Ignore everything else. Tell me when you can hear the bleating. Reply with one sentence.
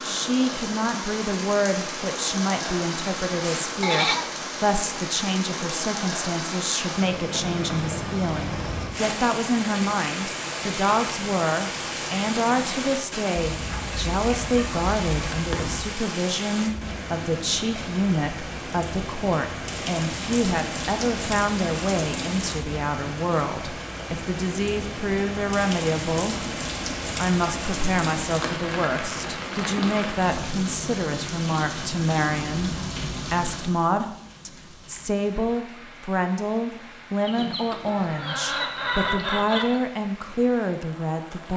The bleating can be heard from 3.4 to 4.3 s.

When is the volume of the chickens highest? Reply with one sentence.
The loudest moment of the chickens is at 39 seconds.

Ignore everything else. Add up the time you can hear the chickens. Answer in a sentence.
The chickens can be heard for 5 seconds in total.